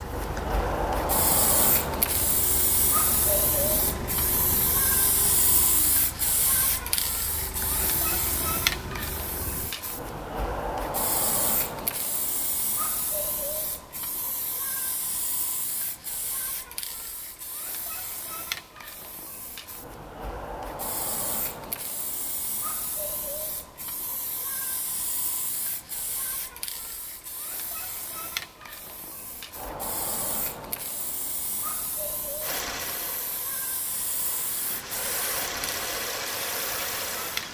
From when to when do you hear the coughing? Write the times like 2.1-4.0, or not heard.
not heard.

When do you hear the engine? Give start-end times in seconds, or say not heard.
0.0-9.8, 32.4-37.4.